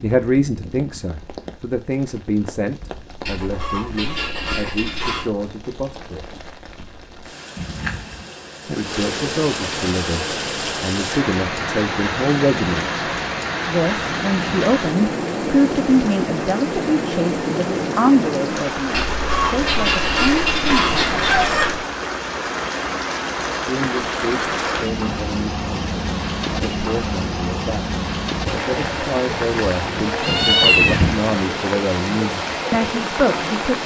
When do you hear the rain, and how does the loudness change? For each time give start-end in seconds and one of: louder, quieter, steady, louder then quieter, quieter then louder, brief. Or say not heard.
0.0-33.8 louder.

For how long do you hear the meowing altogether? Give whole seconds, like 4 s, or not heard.
3 s.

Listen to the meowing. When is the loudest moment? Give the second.
31 s.